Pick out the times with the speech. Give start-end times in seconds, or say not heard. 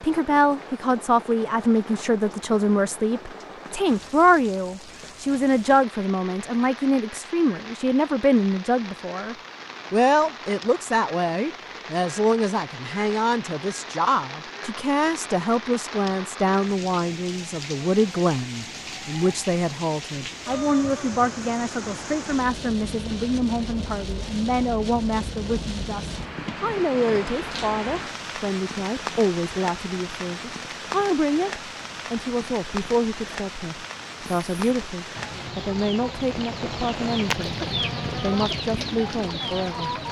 0.0-37.5, 38.2-39.9.